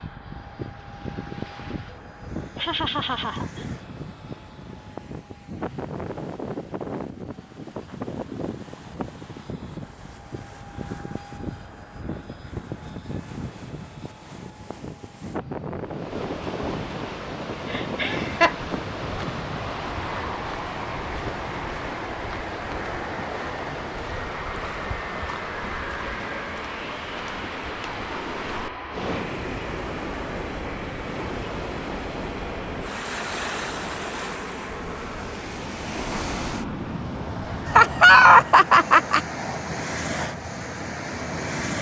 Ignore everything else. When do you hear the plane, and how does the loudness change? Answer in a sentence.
The plane can be heard from 0.0 to 41.7 s, at a steady volume.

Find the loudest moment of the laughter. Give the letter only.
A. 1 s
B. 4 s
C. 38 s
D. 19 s
C.